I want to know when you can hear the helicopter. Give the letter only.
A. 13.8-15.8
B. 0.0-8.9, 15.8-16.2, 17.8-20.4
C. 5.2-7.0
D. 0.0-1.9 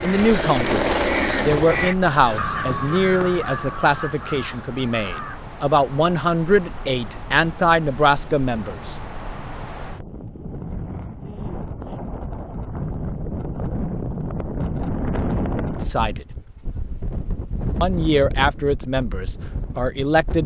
D.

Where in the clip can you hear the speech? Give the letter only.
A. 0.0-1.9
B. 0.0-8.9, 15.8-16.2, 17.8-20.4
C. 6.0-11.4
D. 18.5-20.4
B.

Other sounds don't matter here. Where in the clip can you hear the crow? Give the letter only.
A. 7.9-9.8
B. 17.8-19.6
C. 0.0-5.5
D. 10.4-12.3
C.